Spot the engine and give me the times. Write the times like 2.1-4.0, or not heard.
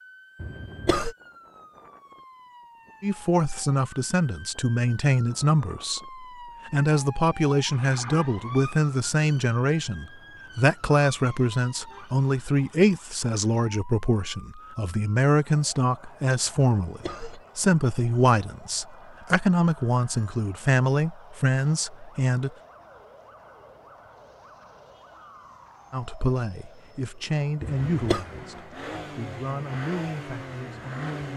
27.6-31.3.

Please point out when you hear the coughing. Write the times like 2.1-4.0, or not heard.
0.4-1.1, 16.8-17.4, 27.6-28.2.